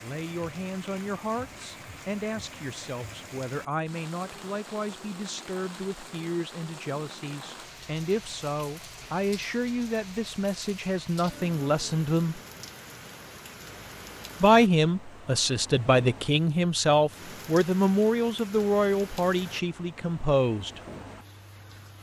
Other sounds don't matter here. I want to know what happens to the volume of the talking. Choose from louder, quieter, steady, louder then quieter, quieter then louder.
louder.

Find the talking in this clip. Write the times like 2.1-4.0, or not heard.
0.0-12.4, 14.4-20.8.